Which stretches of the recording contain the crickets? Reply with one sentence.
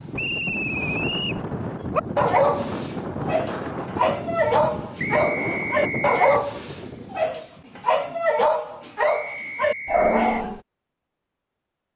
You can't hear the crickets here.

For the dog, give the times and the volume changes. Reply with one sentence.
The dog can be heard from 1.9 to 10.6 s, at a steady volume.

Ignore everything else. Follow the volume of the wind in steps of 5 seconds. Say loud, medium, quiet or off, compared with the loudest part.
loud, loud, off.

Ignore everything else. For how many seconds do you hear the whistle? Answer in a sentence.
You can hear the whistle for 4 seconds altogether.